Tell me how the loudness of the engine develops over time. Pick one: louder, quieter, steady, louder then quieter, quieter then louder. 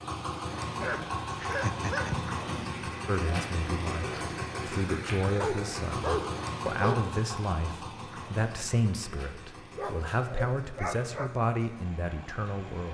quieter.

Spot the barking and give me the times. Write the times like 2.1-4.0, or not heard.
0.8-2.4, 5.2-7.0, 9.8-11.3.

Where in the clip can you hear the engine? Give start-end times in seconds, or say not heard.
0.0-12.8.